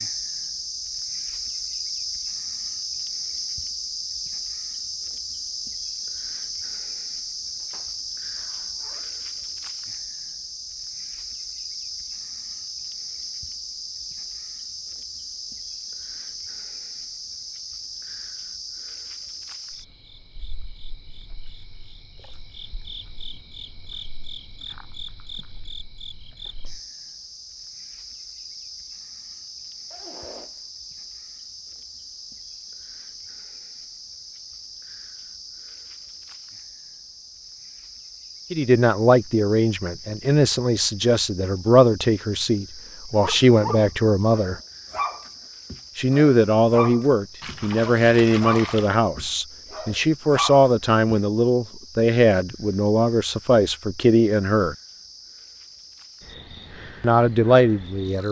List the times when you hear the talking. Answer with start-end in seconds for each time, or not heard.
38.5-44.6, 46.0-54.8, 57.0-58.2.